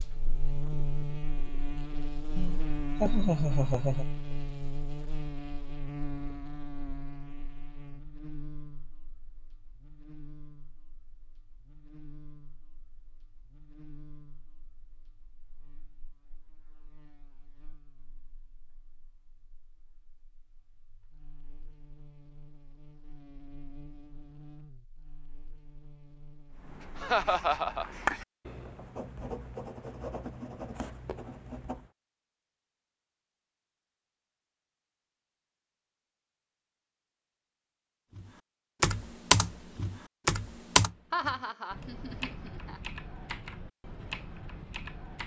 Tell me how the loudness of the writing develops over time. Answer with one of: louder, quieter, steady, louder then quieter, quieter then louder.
louder then quieter.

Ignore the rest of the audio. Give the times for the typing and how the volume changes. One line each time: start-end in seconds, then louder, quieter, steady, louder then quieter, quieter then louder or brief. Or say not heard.
38.1-45.2 quieter.